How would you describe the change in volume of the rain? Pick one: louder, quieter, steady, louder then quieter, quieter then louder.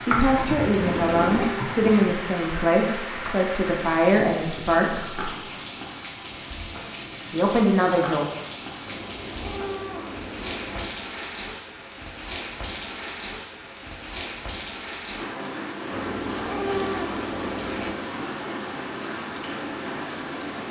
steady.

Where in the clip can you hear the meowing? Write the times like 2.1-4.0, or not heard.
0.8-1.6, 8.8-10.8, 15.9-17.9.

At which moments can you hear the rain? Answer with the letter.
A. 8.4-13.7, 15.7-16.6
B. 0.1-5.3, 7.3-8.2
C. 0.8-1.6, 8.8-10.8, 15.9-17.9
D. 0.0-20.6
D.